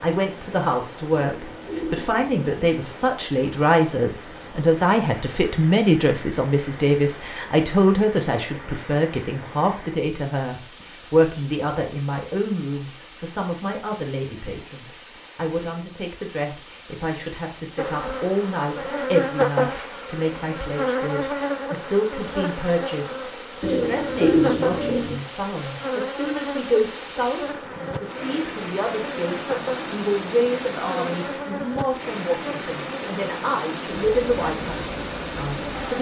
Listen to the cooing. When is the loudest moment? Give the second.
24 s.